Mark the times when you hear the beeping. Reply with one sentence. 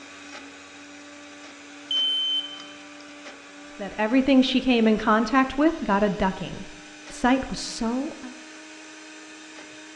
The beeping can be heard from 1.9 to 2.6 s.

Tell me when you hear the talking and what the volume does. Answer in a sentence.
You can hear the talking from 3.8 to 8.3 s, getting quieter then louder.